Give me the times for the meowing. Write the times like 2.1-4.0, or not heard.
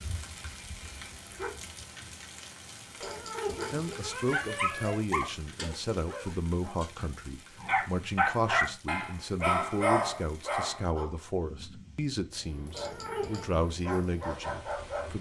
3.0-5.0, 12.7-13.5.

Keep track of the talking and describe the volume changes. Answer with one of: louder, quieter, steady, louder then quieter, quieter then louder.
steady.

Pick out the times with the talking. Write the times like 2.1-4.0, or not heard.
3.7-15.1.